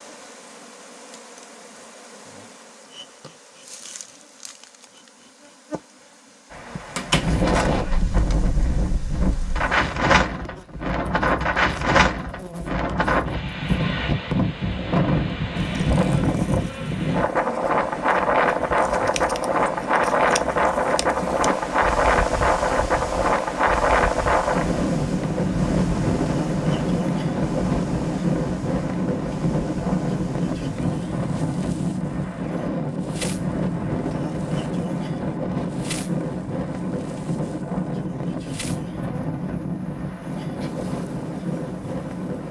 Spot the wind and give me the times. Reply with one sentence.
You can hear the wind from 6.5 to 42.4 s.